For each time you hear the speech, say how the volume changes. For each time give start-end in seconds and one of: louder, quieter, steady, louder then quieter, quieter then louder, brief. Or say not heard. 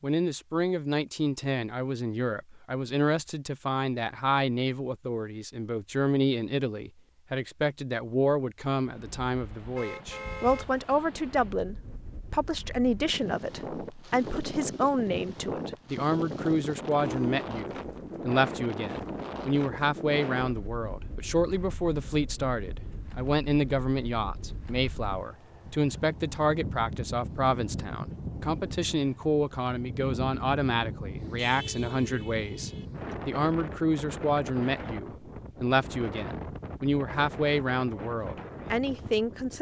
0.0-39.5 steady.